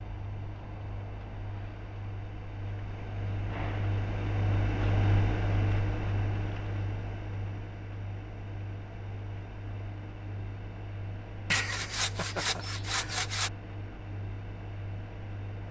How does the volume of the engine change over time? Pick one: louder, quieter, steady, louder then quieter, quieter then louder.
louder then quieter.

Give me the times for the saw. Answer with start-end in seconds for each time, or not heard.
11.5-13.5.